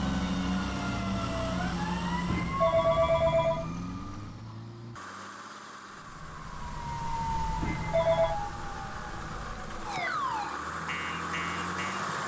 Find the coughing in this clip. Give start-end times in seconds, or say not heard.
not heard.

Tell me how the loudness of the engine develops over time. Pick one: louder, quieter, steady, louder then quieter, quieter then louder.
quieter then louder.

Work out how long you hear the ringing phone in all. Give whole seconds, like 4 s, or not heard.
2 s.